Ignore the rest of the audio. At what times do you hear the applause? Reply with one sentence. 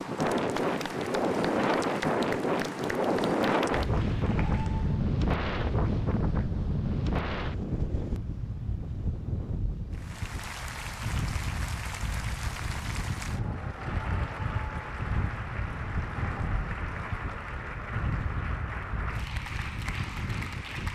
You can hear the applause from 0.1 to 5.0 s and from 9.9 to 20.9 s.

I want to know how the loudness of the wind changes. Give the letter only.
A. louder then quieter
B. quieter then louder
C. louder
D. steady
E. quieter
E.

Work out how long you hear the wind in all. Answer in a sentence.
You can hear the wind for 21 seconds altogether.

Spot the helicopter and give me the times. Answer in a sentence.
The helicopter can't be heard in this clip.